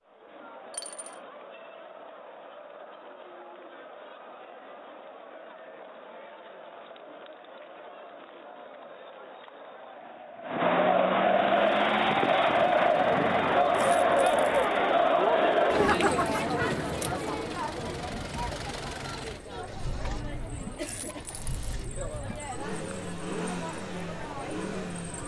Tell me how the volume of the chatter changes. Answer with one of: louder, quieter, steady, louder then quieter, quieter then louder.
louder then quieter.